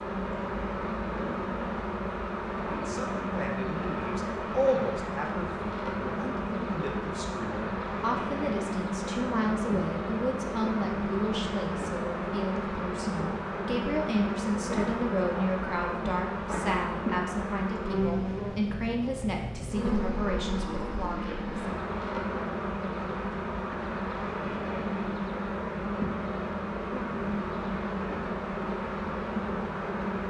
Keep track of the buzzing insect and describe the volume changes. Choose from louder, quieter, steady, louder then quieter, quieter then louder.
steady.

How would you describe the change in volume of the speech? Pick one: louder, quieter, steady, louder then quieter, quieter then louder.
steady.